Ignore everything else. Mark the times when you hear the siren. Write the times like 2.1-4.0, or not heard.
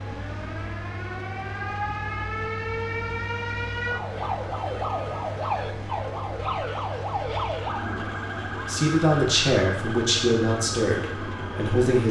0.0-12.0.